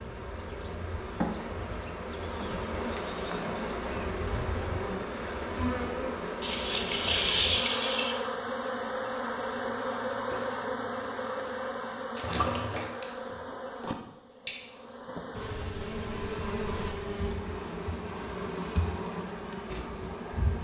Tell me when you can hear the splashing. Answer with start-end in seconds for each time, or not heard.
6.4-8.2, 12.2-13.4.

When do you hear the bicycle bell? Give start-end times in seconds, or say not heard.
14.4-15.3.